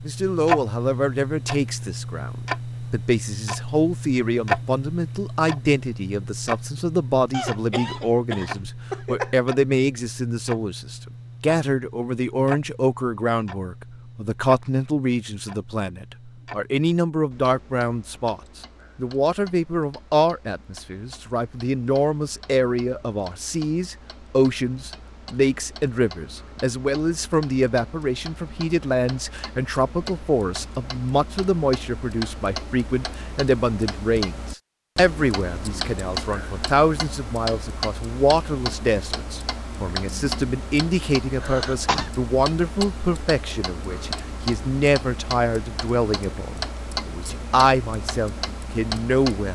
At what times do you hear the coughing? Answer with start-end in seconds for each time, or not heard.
7.3-9.3, 41.4-42.1.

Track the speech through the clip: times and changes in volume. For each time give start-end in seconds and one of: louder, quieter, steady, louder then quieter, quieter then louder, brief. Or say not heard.
0.1-49.4 steady.